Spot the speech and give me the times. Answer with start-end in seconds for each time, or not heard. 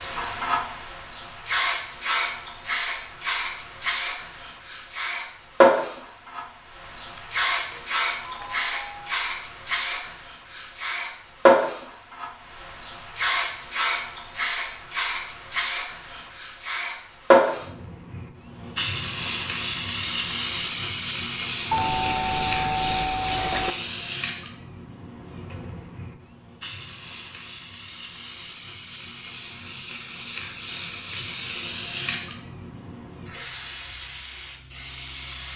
not heard.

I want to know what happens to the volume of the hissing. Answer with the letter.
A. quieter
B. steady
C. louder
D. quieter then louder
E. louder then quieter
A.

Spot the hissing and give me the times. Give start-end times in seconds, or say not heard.
0.0-35.5.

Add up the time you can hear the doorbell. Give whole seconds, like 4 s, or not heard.
4 s.